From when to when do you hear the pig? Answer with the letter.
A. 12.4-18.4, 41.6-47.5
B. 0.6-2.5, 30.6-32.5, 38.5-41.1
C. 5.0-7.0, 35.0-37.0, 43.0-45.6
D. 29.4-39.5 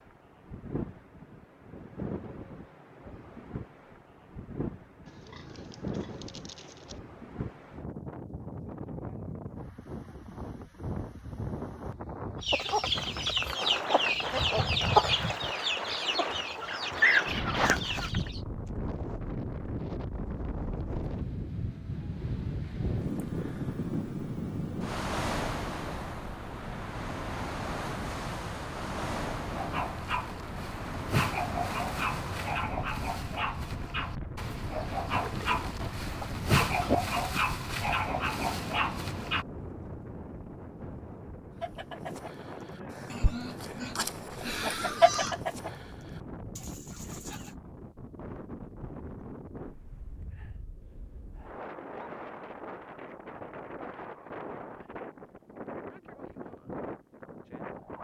C.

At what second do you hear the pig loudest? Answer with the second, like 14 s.
37 s.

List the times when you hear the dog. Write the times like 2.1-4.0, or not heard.
29.4-39.5.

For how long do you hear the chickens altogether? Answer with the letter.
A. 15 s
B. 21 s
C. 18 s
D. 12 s
D.